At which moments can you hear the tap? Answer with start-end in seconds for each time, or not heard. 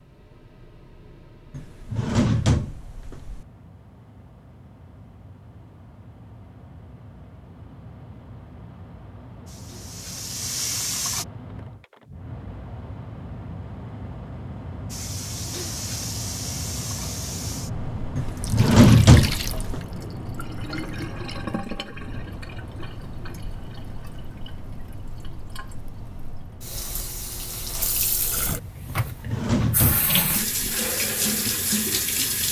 9.4-11.2, 14.9-32.4.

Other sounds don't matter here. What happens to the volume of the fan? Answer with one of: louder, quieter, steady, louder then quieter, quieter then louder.
louder then quieter.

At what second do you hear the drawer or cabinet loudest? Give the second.
19 s.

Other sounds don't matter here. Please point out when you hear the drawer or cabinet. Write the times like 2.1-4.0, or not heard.
1.5-3.5, 18.1-19.8, 28.9-30.7.